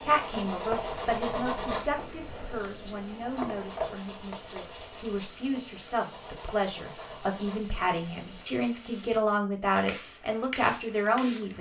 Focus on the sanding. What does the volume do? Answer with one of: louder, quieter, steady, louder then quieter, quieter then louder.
quieter.